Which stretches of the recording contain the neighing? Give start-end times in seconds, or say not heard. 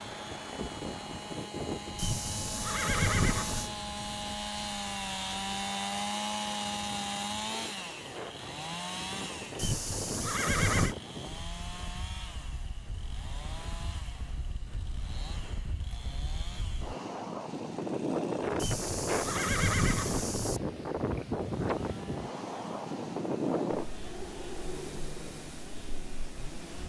1.9-3.7, 9.6-10.9, 18.6-20.6.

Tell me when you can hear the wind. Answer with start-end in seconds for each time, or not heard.
0.0-26.8.